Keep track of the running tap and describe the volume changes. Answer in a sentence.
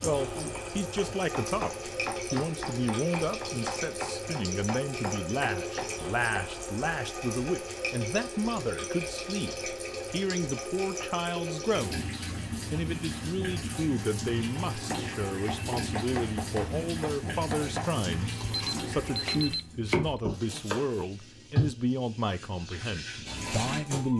The loudness of the running tap stays about the same.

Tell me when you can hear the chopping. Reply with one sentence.
You can hear the chopping from 0.0 to 6.5 s and from 14.7 to 21.0 s.